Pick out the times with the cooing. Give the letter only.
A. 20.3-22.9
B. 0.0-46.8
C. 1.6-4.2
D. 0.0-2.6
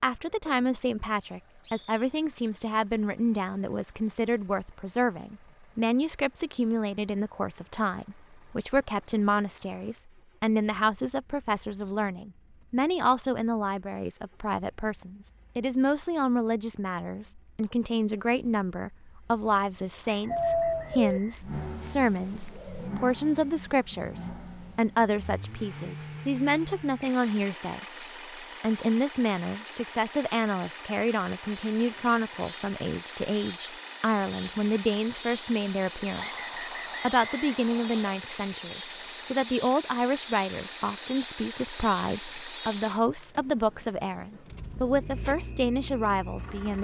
A.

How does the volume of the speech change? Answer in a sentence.
The volume of the speech stays about the same.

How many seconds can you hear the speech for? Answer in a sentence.
The speech can be heard for 47 seconds in total.